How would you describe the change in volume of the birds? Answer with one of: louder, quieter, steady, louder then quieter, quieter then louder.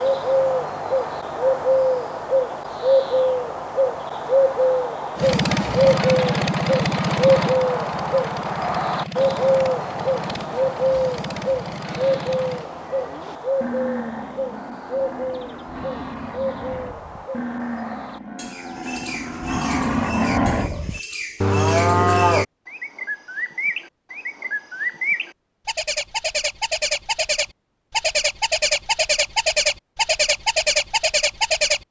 quieter then louder.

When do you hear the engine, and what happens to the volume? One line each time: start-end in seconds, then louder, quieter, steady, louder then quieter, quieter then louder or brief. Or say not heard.
5.2-12.7 quieter.